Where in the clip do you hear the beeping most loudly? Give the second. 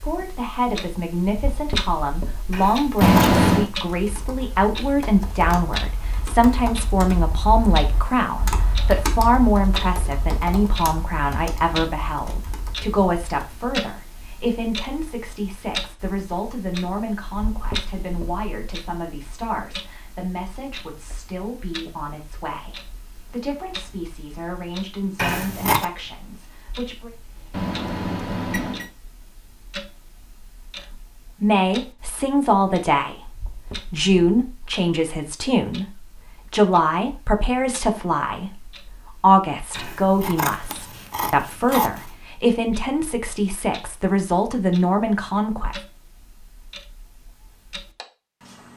3 s.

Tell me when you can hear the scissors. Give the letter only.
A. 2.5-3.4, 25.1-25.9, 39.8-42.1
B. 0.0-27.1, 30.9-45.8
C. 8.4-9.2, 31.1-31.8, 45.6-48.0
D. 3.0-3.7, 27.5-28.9
A.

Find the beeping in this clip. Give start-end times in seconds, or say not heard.
3.0-3.7, 27.5-28.9.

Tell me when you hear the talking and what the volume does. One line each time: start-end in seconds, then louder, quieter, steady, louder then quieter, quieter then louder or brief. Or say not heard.
0.0-27.1 quieter
30.9-45.8 steady.